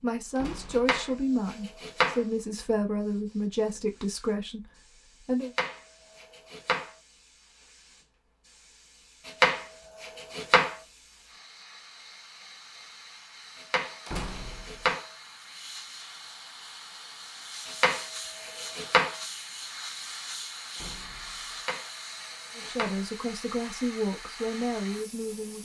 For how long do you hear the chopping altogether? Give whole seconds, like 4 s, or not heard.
9 s.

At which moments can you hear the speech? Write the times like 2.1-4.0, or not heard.
0.0-5.5, 22.6-25.6.